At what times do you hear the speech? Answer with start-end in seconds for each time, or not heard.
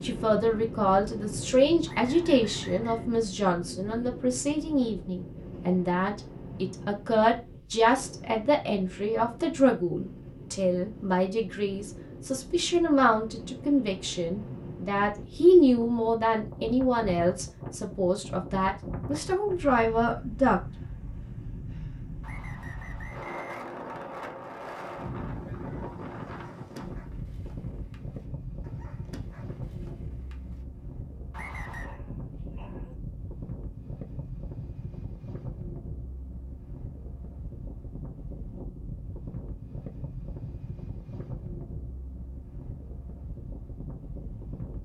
0.0-20.6.